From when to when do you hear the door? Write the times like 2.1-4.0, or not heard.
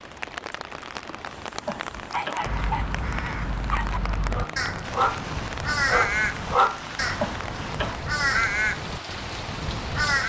not heard.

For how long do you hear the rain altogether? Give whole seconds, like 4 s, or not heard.
10 s.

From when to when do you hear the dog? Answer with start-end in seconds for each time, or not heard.
1.4-6.8.